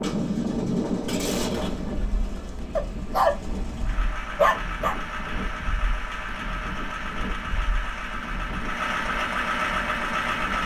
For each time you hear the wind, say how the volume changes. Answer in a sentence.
You can hear the wind from 0.0 to 10.6 s, getting quieter.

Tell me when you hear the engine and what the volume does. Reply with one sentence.
The engine can be heard from 0.0 to 10.6 s, getting louder.